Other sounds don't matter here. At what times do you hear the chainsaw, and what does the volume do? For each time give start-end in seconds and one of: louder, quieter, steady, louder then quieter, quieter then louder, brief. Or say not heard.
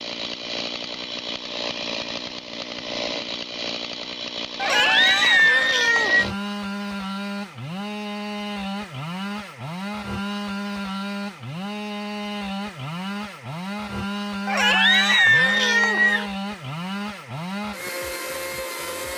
0.0-19.1 steady.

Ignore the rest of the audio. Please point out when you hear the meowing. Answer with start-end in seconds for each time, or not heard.
4.6-6.2, 14.4-16.2.